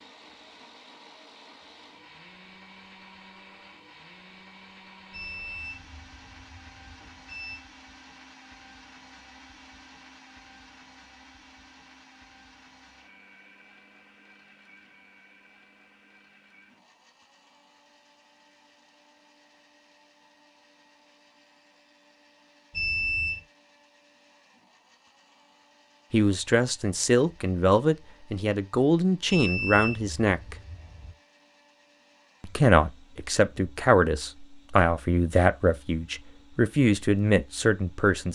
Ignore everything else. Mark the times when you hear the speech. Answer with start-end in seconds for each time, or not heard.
26.1-30.6, 32.4-38.2.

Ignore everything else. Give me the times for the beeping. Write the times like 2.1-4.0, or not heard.
5.1-7.6, 22.7-23.4, 29.2-31.1.